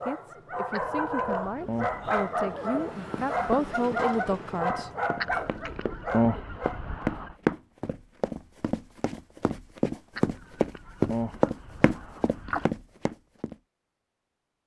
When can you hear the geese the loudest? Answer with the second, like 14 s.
6 s.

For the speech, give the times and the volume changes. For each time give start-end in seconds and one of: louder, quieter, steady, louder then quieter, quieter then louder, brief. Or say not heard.
0.0-4.9 louder.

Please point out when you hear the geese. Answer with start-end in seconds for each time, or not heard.
0.7-2.0, 5.2-7.3, 10.2-12.7.